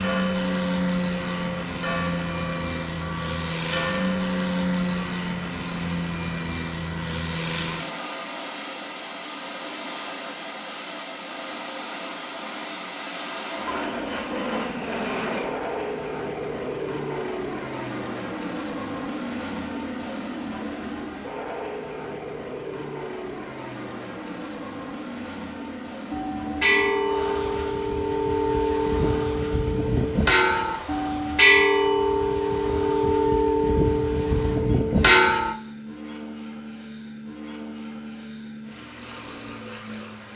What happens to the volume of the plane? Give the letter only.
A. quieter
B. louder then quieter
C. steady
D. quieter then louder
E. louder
A.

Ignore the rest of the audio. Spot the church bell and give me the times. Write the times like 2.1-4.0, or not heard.
0.0-5.0, 26.1-35.5.